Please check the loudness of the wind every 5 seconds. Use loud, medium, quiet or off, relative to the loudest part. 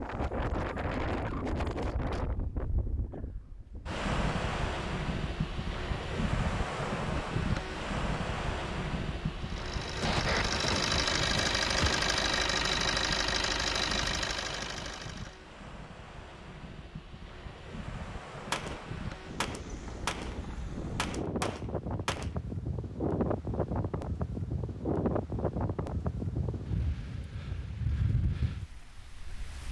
loud, loud, medium, medium, loud, loud.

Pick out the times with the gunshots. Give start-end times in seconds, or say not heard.
10.0-12.1, 18.5-22.4.